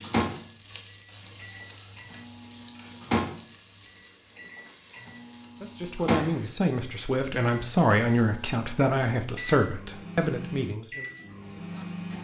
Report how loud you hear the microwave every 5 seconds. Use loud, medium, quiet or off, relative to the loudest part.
loud, loud, medium.